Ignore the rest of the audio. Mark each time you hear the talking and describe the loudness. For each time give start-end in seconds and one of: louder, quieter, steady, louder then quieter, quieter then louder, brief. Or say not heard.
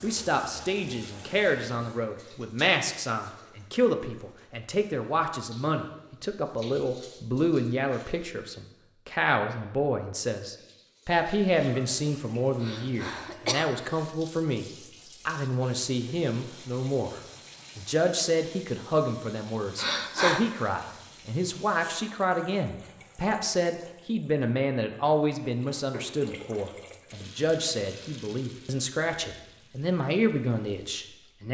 0.0-14.7 steady
15.2-31.4 steady.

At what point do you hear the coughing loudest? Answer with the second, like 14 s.
20 s.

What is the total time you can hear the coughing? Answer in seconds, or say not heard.
2 s.